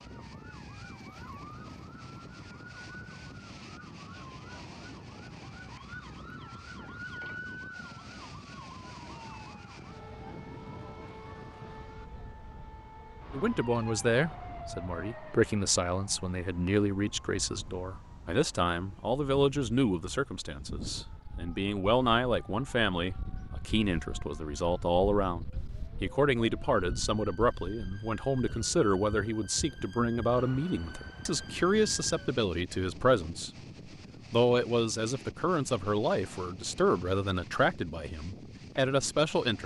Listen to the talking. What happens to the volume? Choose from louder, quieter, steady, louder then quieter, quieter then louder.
steady.